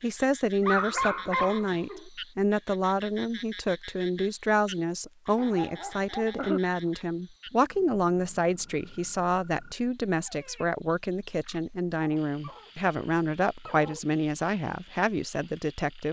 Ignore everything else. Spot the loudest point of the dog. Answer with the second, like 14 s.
1 s.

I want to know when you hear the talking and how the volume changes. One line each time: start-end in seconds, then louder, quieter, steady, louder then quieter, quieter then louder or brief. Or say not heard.
0.0-16.0 steady.